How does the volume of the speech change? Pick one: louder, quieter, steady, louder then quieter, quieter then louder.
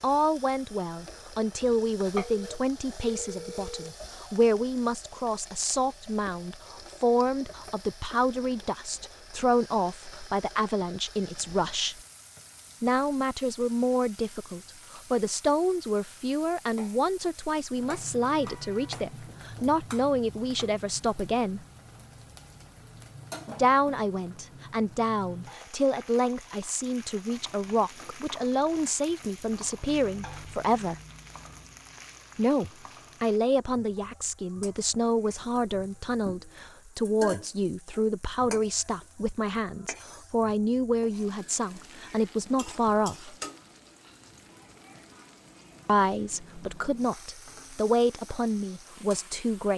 steady.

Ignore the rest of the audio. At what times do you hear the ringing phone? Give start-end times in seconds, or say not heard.
2.1-4.0.